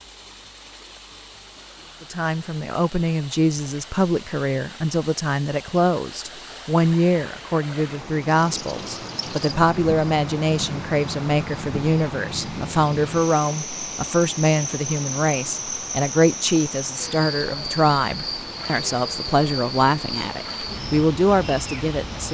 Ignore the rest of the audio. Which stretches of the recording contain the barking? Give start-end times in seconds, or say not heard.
not heard.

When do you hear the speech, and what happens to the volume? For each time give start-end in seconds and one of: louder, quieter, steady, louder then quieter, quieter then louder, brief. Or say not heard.
2.0-22.2 steady.